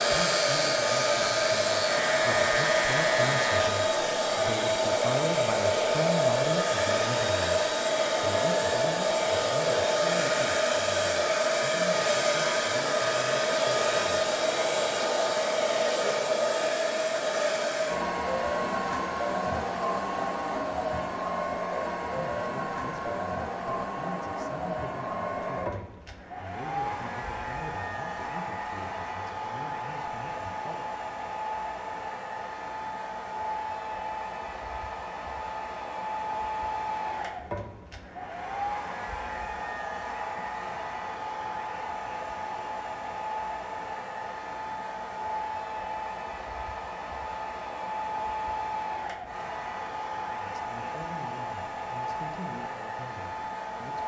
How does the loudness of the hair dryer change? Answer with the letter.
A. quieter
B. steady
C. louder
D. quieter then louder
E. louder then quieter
A.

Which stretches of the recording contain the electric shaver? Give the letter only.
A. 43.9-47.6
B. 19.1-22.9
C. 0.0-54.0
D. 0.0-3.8
D.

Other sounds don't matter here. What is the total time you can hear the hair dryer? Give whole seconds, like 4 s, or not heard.
54 s.